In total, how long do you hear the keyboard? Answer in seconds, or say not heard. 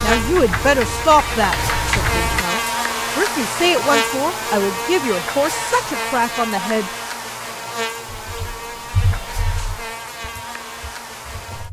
6 s.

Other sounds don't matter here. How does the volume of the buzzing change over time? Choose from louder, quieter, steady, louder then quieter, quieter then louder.
quieter.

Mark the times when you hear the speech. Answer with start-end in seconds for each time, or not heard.
0.0-6.9.